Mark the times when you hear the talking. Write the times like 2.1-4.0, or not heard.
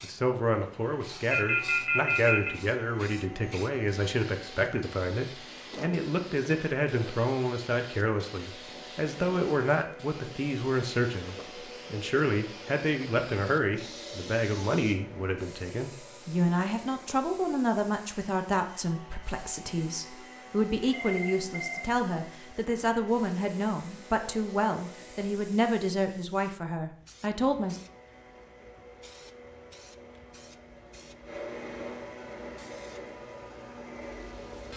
0.0-27.8.